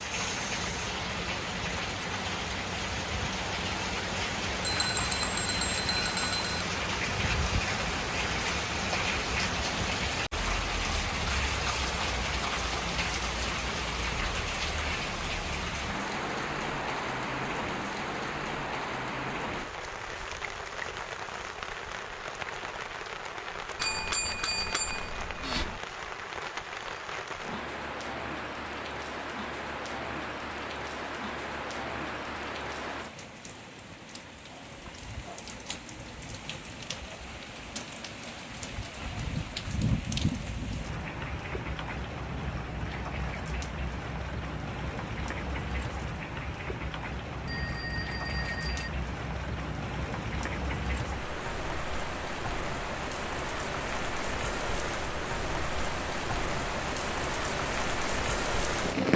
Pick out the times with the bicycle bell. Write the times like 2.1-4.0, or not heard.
4.6-6.7, 23.8-25.8, 47.5-48.9.